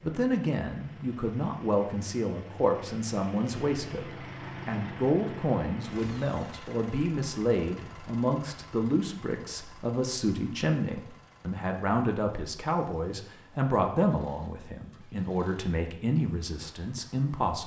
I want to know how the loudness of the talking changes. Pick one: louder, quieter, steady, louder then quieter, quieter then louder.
steady.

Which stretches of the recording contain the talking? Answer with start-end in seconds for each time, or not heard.
0.0-17.6.